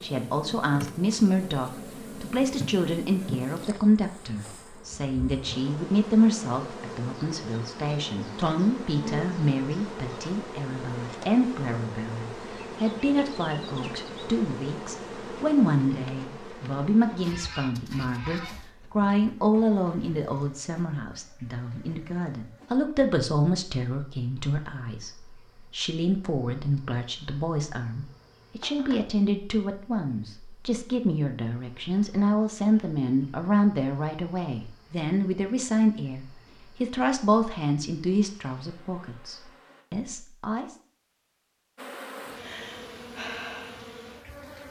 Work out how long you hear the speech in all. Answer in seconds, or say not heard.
41 s.